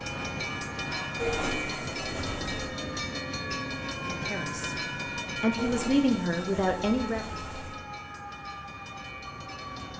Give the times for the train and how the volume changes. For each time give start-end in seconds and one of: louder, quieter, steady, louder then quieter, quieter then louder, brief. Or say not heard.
0.0-9.9 quieter.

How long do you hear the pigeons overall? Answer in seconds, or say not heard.
4 s.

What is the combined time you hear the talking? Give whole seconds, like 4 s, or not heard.
3 s.